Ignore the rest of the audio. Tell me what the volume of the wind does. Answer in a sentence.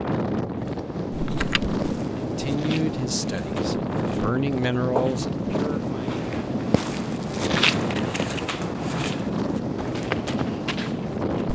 The volume of the wind stays about the same.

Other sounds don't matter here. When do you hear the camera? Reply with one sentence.
You can hear the camera from 1.1 to 1.8 s and from 7.9 to 8.4 s.